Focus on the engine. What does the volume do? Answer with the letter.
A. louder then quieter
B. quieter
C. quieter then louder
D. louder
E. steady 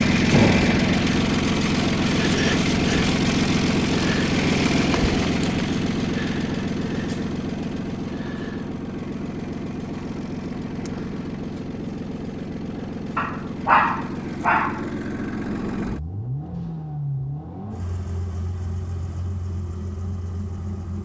B.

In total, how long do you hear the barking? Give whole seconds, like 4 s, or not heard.
2 s.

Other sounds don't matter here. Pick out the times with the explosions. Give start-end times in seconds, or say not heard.
0.3-0.9.